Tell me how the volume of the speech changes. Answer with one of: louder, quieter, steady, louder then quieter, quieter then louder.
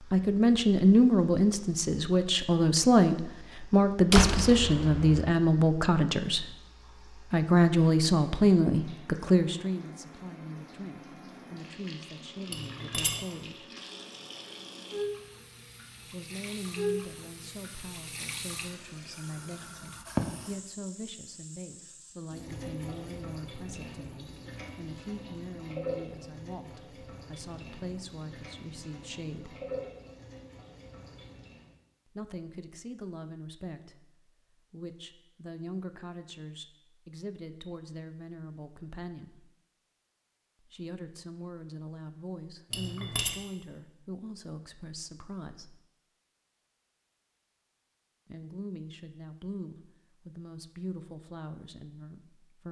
quieter.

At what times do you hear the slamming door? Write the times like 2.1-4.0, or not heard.
4.1-5.3.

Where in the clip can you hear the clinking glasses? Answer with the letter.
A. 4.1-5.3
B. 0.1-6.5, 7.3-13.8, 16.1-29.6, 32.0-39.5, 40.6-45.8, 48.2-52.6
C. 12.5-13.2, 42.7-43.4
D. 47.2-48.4
C.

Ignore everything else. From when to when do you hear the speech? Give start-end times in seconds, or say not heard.
0.1-6.5, 7.3-13.8, 16.1-29.6, 32.0-39.5, 40.6-45.8, 48.2-52.6.